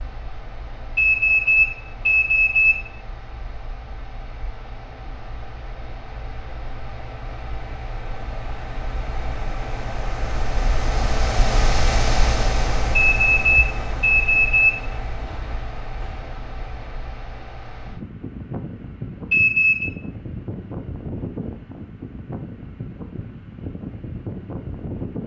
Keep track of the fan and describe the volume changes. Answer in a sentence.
The loudness of the fan goes up, then down.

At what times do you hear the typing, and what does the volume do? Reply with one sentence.
The typing can't be heard in this clip.